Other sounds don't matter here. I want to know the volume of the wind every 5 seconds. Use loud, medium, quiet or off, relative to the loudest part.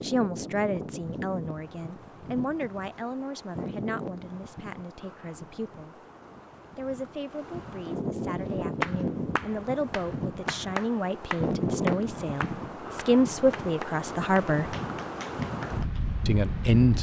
medium, loud, loud, loud.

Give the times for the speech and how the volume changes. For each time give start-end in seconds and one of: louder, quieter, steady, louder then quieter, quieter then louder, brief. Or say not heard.
0.0-6.0 quieter
6.8-14.8 louder
16.2-16.9 brief.